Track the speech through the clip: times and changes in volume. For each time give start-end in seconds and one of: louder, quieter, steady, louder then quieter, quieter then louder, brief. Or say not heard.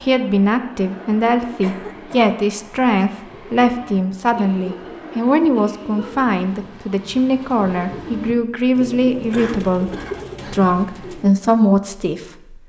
0.0-12.6 steady.